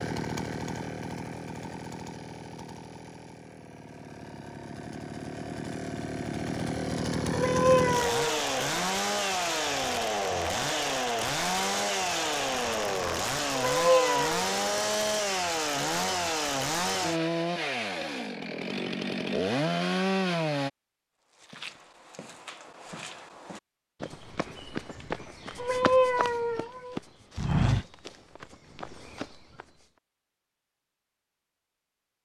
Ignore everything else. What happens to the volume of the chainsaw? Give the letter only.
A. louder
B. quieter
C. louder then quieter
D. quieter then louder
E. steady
A.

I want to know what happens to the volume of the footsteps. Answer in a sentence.
The volume of the footsteps goes up, then down.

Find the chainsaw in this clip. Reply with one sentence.
The chainsaw can be heard from 0.0 to 20.7 s.